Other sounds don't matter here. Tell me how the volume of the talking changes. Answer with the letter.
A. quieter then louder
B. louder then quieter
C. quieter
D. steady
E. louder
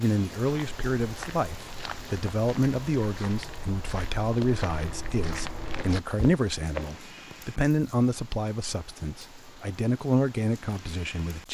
D.